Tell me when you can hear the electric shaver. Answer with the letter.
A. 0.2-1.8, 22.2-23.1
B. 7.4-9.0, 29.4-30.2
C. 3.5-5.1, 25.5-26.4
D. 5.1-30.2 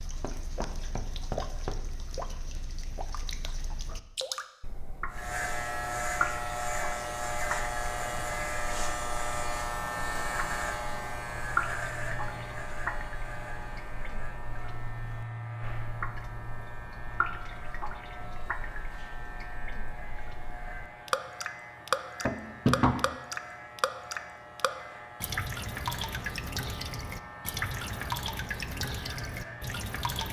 D.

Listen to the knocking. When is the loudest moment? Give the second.
23 s.